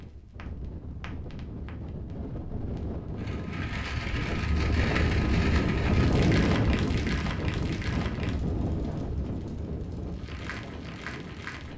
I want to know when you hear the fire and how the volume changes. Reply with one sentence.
You can hear the fire from 0.0 to 11.7 s, getting louder then quieter.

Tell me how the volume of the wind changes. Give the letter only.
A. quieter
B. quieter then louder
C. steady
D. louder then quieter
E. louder
D.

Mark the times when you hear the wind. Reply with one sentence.
The wind can be heard from 0.0 to 11.7 s.